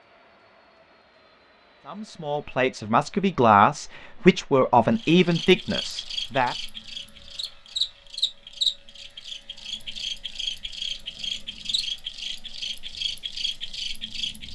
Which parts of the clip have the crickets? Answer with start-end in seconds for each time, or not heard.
5.0-14.4.